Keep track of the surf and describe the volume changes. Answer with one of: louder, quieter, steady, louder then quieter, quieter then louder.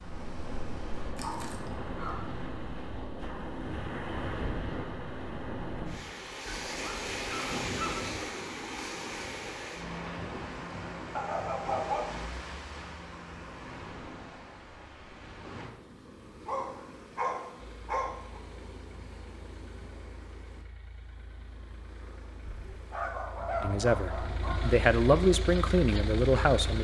quieter.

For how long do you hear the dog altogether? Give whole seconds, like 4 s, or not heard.
8 s.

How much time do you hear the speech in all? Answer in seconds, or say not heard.
3 s.